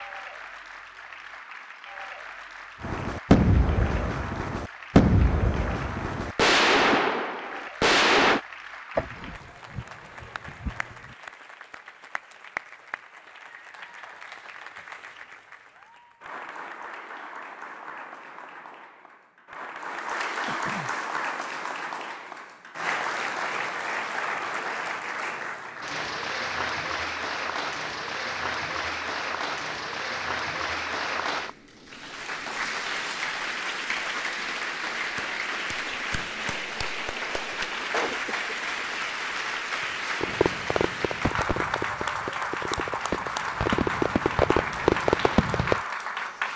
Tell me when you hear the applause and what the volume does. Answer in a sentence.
The applause can be heard from 0.0 to 46.5 s, getting louder.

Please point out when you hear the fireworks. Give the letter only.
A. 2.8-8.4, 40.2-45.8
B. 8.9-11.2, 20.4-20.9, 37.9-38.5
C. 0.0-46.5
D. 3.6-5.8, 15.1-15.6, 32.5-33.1
A.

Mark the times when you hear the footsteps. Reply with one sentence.
You can't hear the footsteps here.